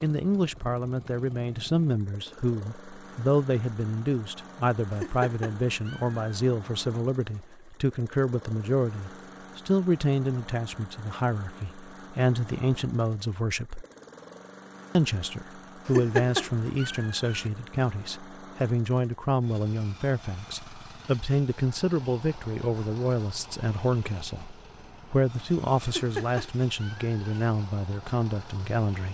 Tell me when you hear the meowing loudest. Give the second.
16 s.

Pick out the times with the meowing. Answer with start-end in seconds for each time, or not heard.
4.9-6.3, 15.8-17.4, 25.9-27.2.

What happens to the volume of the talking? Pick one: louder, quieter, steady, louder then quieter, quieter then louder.
steady.